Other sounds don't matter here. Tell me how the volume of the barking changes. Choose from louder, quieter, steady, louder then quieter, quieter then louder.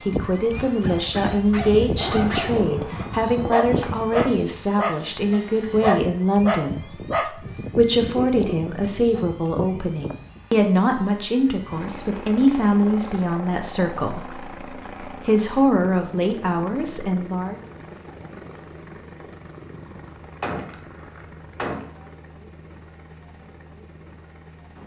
louder then quieter.